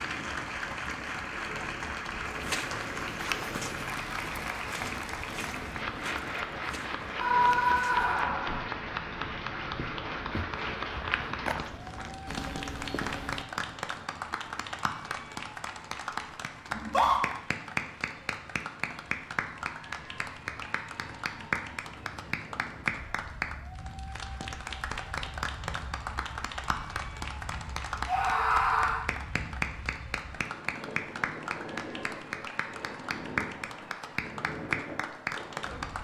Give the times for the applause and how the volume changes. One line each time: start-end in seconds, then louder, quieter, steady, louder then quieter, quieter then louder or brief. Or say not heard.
0.0-35.9 steady.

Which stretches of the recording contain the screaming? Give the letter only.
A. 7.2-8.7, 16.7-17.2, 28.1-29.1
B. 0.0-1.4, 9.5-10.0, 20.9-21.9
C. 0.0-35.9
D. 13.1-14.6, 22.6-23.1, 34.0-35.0
A.